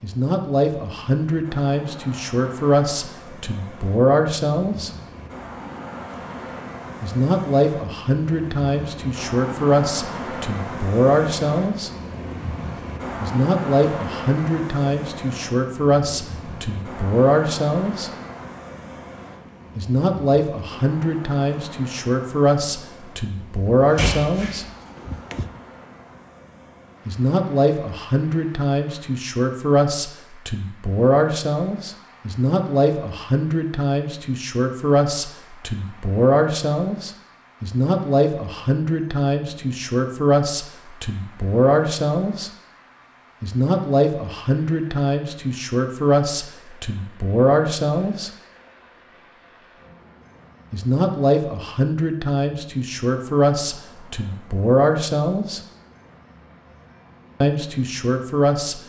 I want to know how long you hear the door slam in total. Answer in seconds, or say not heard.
2 s.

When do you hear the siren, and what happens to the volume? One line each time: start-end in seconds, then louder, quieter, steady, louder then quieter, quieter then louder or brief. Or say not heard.
not heard.